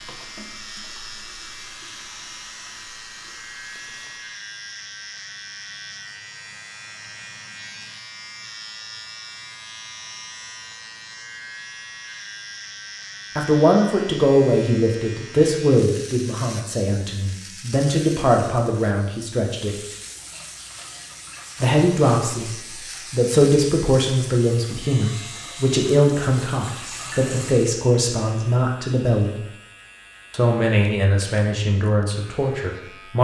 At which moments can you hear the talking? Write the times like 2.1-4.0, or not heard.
13.3-19.8, 21.6-29.4, 30.3-33.1.